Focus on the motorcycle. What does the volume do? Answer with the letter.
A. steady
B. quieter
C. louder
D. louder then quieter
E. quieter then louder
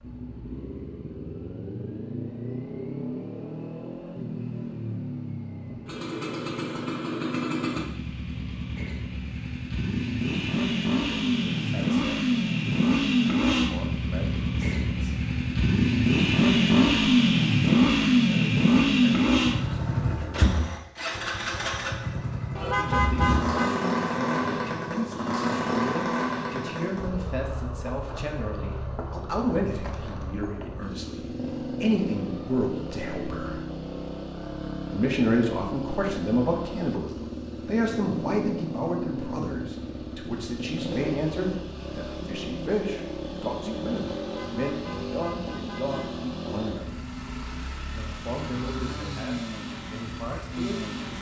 D.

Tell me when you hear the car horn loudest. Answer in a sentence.
The volume of the car horn peaks at 23 seconds.